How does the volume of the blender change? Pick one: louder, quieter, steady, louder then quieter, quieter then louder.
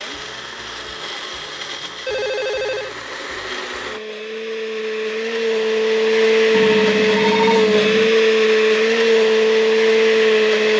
louder.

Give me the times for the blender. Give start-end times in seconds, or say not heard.
0.0-10.7.